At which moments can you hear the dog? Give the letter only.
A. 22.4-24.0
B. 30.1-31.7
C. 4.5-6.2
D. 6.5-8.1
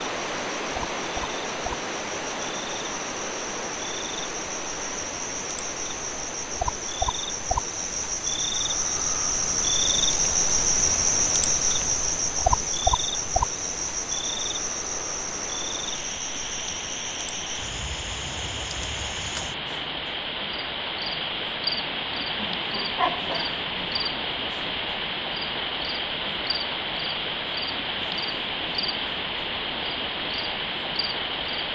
A.